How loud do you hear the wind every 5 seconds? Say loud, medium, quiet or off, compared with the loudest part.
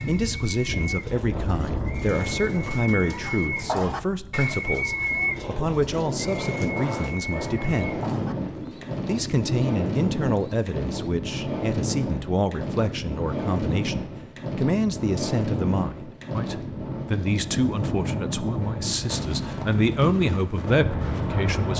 medium, loud, loud, loud, loud.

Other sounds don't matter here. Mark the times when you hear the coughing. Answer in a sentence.
The coughing can't be heard in this clip.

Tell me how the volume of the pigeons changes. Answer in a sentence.
The volume of the pigeons goes up, then down.